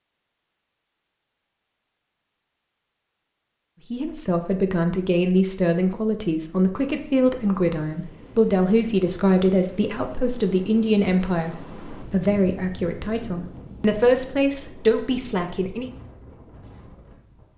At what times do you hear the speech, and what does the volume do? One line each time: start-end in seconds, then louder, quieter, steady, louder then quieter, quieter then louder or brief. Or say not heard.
3.9-15.9 steady.